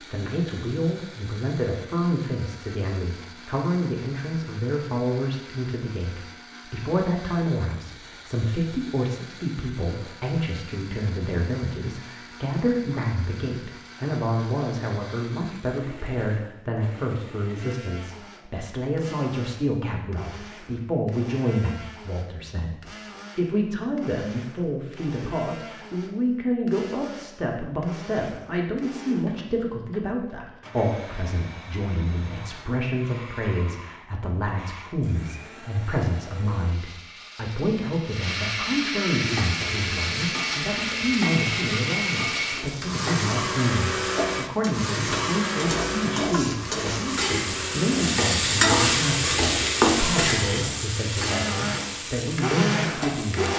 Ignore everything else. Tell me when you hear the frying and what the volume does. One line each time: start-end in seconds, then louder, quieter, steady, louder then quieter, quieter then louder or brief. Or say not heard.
39.1-53.5 louder then quieter.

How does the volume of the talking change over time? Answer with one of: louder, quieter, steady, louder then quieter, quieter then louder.
steady.